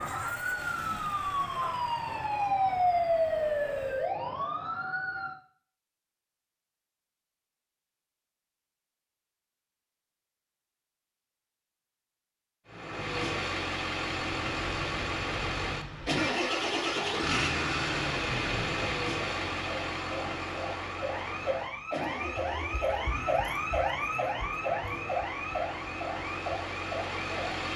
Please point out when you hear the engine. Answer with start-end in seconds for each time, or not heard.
0.0-4.1, 12.7-27.7.